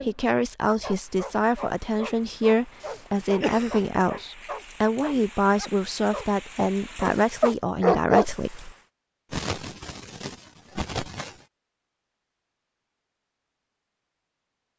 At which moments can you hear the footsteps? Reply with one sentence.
You can't hear the footsteps here.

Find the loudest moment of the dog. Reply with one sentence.
The volume of the dog peaks at 8 seconds.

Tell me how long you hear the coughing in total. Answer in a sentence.
The coughing can be heard for 3 seconds in total.